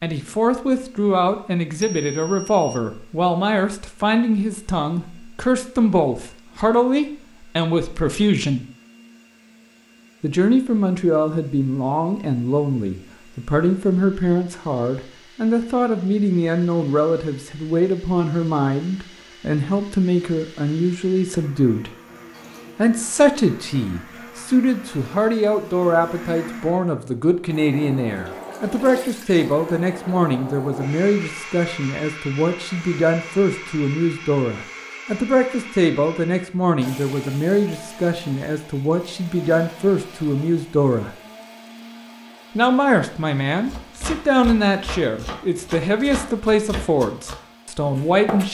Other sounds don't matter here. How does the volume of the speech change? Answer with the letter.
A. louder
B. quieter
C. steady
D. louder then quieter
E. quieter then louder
C.